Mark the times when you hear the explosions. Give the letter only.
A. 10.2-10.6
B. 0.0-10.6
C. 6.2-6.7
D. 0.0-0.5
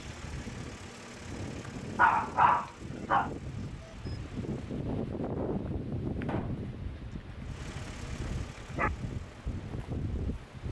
C.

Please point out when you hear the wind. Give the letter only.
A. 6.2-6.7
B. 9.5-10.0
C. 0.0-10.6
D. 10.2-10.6
C.